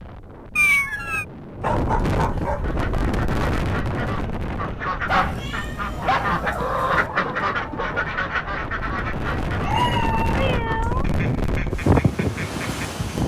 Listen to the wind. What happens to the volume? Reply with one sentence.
The loudness of the wind goes down, then up.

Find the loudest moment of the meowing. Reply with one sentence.
The volume of the meowing peaks at 1 second.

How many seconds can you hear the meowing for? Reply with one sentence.
You can hear the meowing for 4 seconds altogether.